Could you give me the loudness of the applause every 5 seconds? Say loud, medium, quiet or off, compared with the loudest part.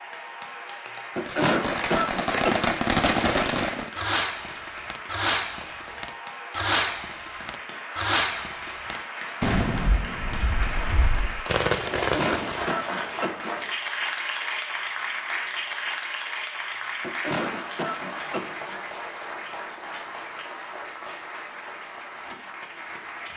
medium, medium, loud, loud, medium.